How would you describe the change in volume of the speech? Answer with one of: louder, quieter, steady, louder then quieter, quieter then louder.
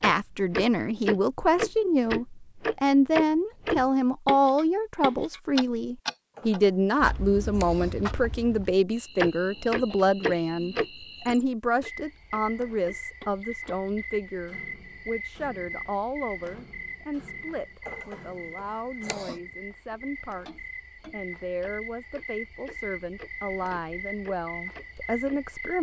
quieter.